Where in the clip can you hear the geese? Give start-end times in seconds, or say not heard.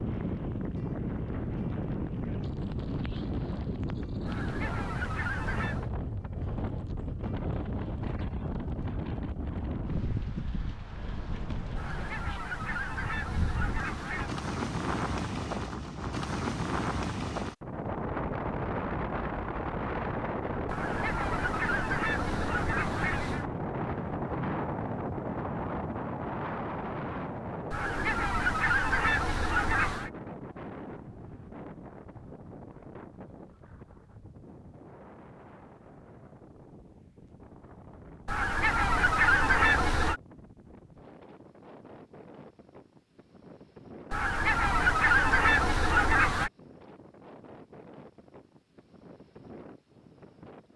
4.2-5.9, 11.8-14.3, 20.6-23.4, 27.7-30.1, 38.2-40.2, 44.1-46.5.